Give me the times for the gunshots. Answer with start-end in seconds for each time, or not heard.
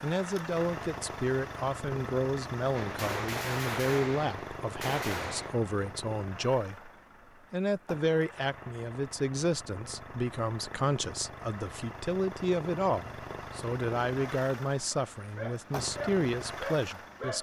2.8-5.6.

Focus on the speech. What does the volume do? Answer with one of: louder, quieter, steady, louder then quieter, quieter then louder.
steady.